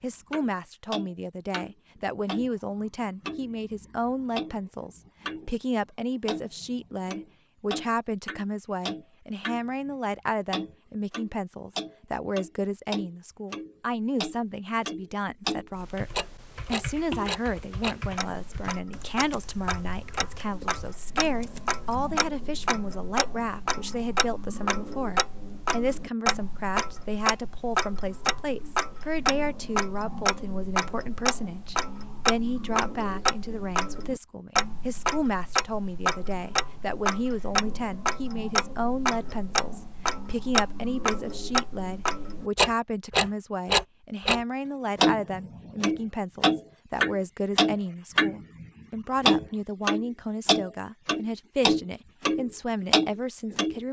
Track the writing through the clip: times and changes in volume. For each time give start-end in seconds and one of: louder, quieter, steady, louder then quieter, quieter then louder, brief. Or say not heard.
not heard.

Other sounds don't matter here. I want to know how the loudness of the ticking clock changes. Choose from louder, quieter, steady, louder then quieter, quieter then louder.
louder.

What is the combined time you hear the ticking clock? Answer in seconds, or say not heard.
53 s.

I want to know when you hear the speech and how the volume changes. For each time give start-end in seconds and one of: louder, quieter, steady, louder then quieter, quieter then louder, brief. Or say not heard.
0.0-53.8 steady.